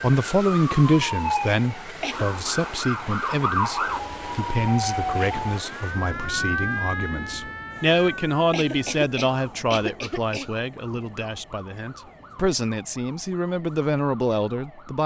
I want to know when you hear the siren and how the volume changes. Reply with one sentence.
You can hear the siren from 0.2 to 15.0 s, getting quieter.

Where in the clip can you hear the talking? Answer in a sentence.
The talking can be heard from 0.0 to 15.0 s.